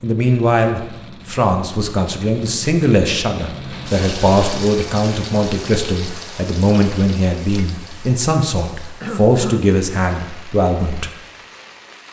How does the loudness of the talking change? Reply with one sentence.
The loudness of the talking stays about the same.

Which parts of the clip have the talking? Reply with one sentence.
You can hear the talking from 0.0 to 11.1 s.